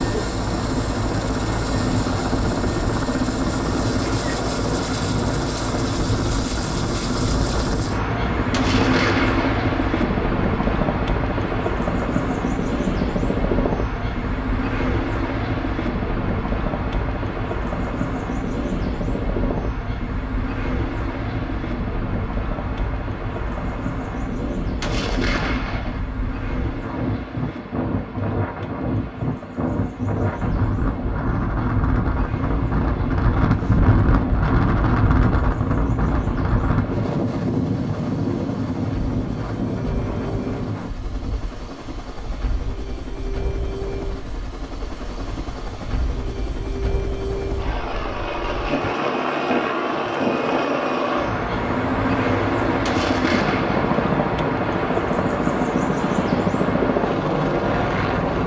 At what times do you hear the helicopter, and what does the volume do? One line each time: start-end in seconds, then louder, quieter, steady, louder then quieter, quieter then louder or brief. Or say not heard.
0.0-58.4 quieter then louder.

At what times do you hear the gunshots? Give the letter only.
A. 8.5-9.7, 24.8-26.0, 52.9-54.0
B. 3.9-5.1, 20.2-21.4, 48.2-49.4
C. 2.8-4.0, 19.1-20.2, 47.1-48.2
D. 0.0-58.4
A.